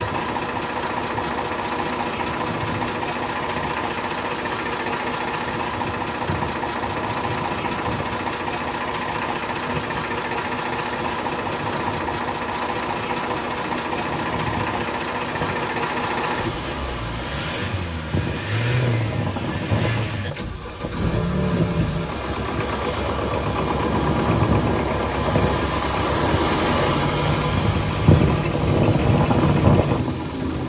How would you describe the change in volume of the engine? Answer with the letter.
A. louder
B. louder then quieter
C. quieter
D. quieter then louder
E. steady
E.